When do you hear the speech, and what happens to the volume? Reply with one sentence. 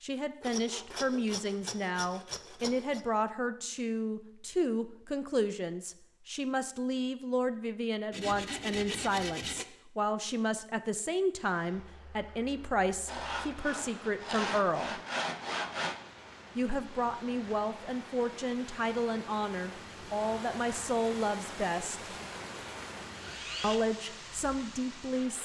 You can hear the speech from 0.0 to 15.0 s, at a steady volume; from 16.6 to 22.1 s, at a steady volume; and briefly from 23.6 to 25.3 s.